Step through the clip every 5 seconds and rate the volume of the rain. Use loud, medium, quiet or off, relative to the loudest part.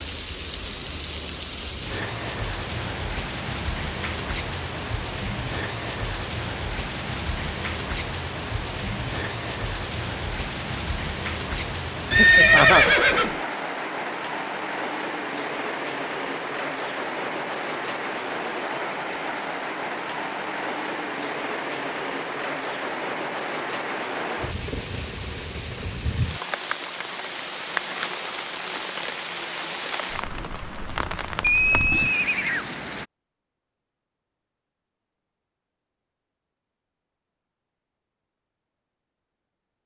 loud, loud, loud, loud, loud, loud, loud, off.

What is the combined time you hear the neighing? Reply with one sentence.
The neighing can be heard for 2 seconds in total.